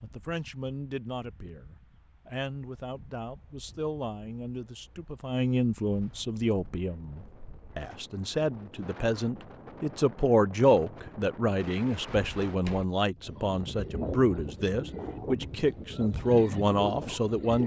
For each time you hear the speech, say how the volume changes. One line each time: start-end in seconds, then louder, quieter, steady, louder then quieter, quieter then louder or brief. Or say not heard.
0.0-17.6 louder.